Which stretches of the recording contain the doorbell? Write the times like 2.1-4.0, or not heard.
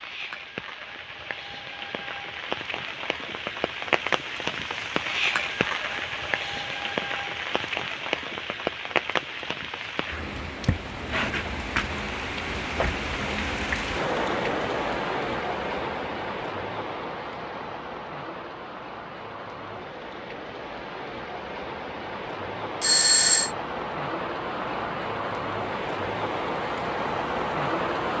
22.8-23.5.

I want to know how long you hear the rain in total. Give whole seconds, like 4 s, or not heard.
28 s.